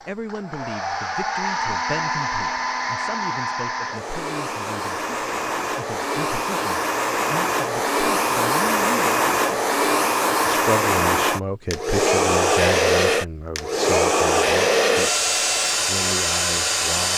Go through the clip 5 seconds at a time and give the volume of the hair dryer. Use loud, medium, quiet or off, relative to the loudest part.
medium, loud, loud, loud.